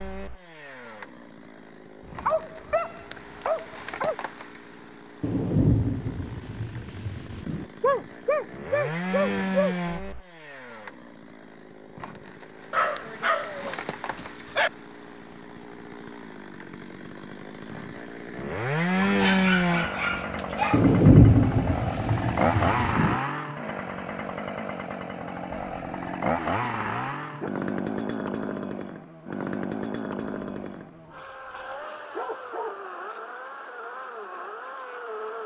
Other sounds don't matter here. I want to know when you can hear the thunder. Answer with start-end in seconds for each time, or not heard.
5.2-7.7, 20.7-23.2.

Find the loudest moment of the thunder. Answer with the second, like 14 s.
21 s.